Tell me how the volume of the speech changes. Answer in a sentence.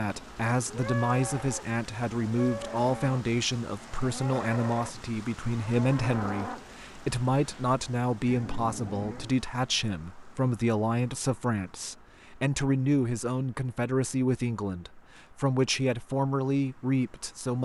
The loudness of the speech stays about the same.